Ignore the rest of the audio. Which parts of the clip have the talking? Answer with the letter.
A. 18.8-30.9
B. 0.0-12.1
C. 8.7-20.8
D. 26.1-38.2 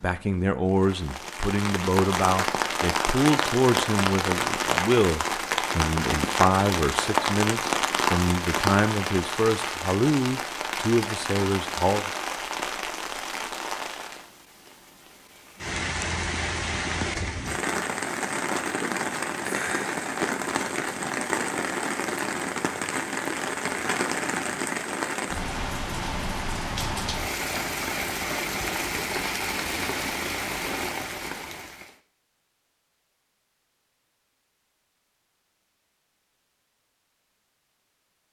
B.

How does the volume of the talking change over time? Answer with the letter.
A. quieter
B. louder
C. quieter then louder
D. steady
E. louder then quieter
D.